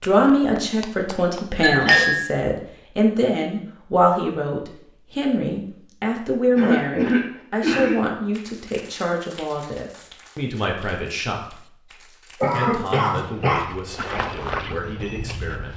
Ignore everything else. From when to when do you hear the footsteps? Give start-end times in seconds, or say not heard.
13.2-15.7.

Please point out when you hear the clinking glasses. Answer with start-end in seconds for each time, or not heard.
1.6-2.2.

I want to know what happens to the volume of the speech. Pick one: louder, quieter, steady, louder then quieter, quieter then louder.
quieter.